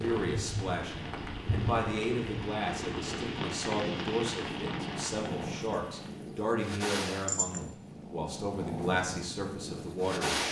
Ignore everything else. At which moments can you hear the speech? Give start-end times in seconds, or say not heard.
0.0-10.4.